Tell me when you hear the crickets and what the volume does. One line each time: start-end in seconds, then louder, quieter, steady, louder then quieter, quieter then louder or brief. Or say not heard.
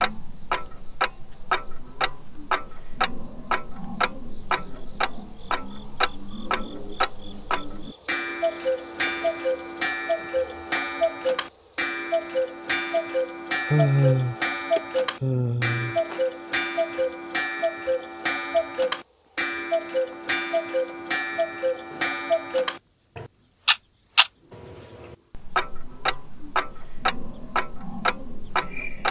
0.0-29.0 louder then quieter.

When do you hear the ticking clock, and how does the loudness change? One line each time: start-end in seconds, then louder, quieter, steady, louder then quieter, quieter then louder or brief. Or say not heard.
0.0-29.0 steady.